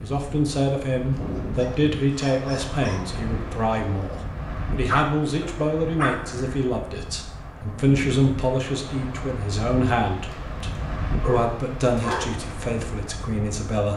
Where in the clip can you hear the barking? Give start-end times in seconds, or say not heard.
1.1-3.0, 4.8-6.5, 10.3-12.2.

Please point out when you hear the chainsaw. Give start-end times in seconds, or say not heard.
not heard.